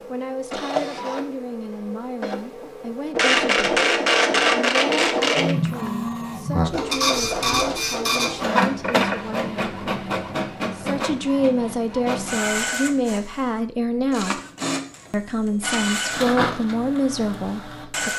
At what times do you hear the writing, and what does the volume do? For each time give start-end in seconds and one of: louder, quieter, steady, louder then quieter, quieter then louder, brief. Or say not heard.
not heard.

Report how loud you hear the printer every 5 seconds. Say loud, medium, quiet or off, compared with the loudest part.
loud, loud, medium, medium.